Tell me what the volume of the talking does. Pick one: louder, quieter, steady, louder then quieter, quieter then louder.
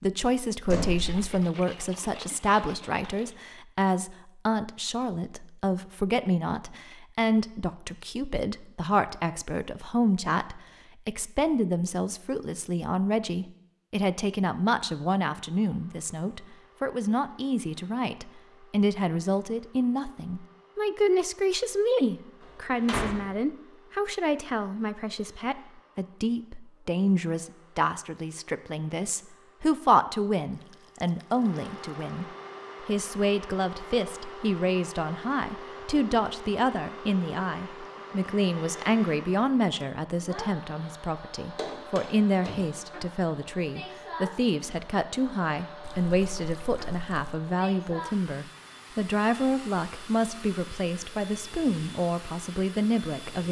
steady.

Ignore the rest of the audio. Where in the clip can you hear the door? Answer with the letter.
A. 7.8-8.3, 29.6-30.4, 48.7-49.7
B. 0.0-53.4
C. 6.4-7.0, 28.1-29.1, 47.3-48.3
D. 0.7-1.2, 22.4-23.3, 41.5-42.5
D.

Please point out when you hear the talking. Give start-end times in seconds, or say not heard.
0.0-53.4.